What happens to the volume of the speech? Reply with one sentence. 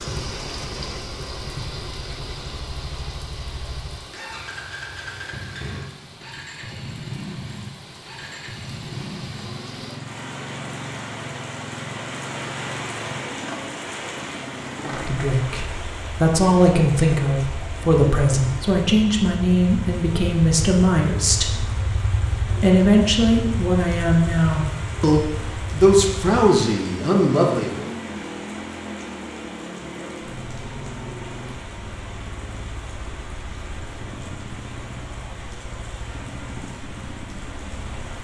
The loudness of the speech stays about the same.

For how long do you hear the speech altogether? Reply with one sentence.
You can hear the speech for 12 seconds altogether.